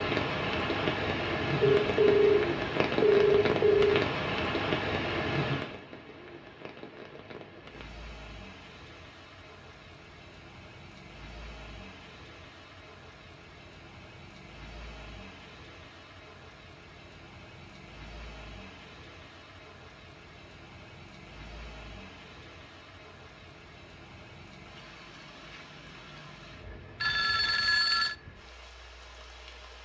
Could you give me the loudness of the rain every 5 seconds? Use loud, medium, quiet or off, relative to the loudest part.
loud, medium, quiet, quiet, quiet, quiet.